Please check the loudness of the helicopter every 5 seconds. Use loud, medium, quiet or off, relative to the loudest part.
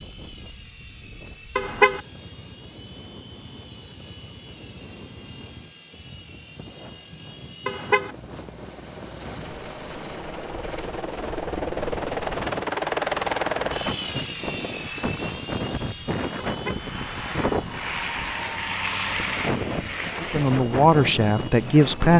quiet, quiet, loud, medium, quiet.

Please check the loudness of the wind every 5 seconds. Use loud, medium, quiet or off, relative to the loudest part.
quiet, quiet, medium, loud, loud.